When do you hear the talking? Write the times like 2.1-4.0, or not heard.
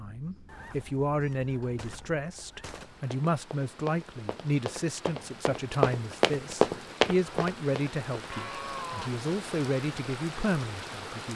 0.0-11.3.